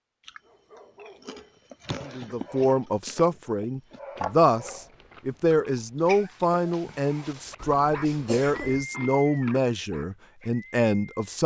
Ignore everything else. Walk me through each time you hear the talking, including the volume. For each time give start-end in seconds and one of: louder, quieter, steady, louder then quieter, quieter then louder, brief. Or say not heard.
2.0-11.4 steady.